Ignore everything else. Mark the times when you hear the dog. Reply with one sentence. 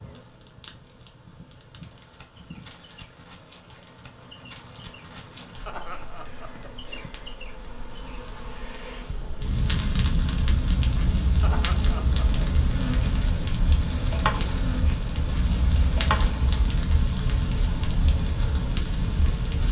The dog can't be heard in this clip.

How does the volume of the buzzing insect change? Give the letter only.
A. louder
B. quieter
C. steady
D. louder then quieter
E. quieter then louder
A.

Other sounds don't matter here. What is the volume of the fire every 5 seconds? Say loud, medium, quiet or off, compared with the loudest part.
quiet, medium, loud, loud.